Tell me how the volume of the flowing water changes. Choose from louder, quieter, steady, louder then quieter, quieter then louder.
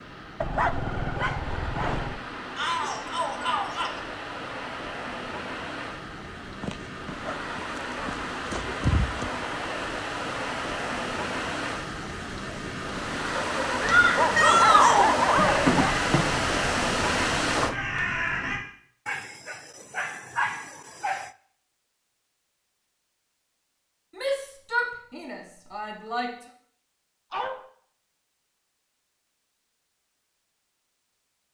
louder.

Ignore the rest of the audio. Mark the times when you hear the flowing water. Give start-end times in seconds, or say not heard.
0.0-17.8.